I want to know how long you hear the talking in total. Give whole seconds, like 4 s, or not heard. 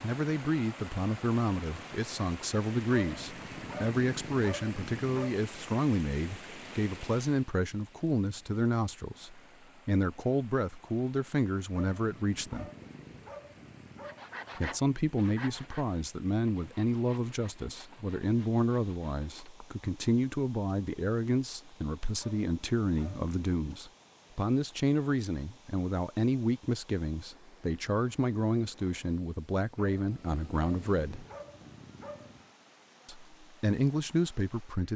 31 s.